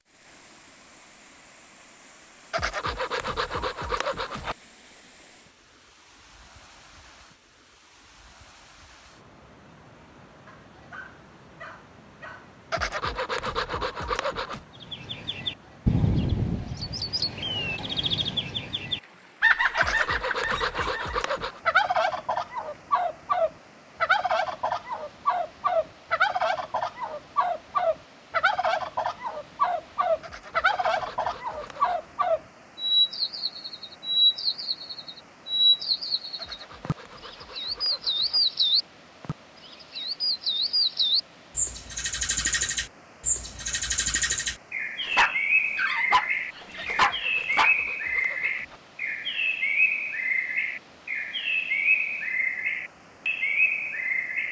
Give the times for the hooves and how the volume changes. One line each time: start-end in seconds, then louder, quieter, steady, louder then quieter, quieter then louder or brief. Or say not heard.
not heard.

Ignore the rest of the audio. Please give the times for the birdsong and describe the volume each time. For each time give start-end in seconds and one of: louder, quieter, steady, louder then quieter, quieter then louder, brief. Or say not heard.
14.8-54.4 steady.